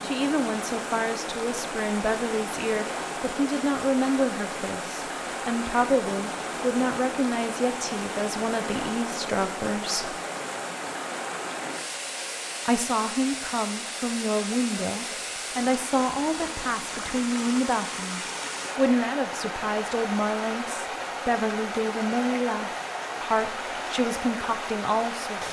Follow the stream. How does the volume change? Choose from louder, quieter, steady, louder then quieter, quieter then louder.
steady.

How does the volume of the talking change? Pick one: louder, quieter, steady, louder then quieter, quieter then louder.
steady.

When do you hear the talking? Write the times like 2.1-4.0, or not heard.
0.0-10.2, 12.7-25.4.